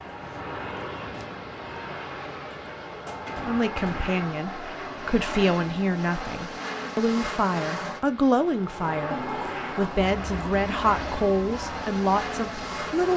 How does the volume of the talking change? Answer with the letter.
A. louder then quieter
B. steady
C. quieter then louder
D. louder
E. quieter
B.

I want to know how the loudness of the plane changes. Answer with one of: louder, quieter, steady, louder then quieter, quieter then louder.
steady.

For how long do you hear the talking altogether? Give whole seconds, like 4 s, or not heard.
10 s.